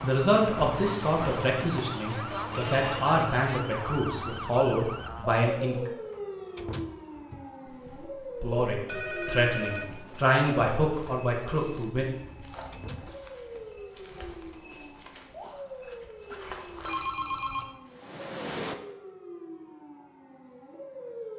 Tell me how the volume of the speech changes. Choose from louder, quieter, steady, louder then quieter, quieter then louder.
steady.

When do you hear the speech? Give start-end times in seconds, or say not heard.
0.0-5.9, 8.4-12.1.